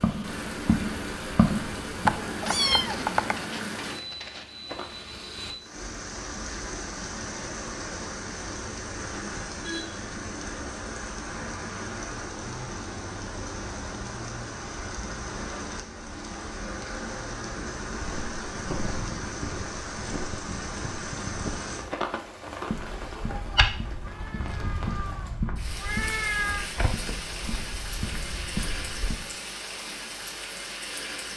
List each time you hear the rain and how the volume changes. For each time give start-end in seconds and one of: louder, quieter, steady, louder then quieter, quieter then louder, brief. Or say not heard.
0.0-31.3 steady.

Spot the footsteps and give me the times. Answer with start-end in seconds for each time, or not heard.
0.0-5.0, 17.9-29.3.